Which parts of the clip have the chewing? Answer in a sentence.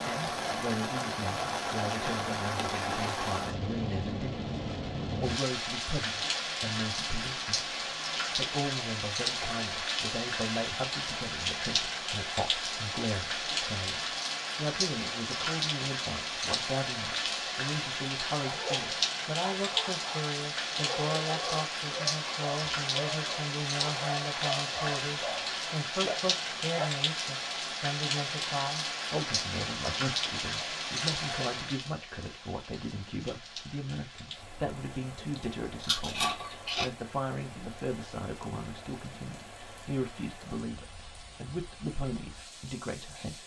You can hear the chewing from 35.4 to 36.9 s.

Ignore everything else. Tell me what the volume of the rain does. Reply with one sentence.
The loudness of the rain goes down.